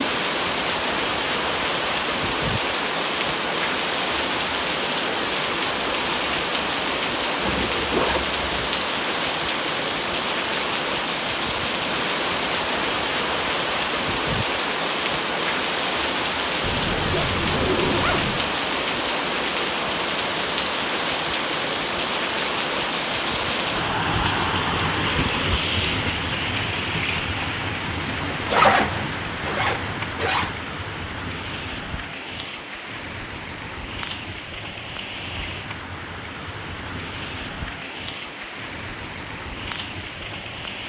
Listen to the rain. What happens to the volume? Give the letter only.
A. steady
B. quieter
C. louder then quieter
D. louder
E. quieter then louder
B.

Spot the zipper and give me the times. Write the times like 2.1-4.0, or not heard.
7.4-8.7, 16.6-18.5, 28.1-30.6.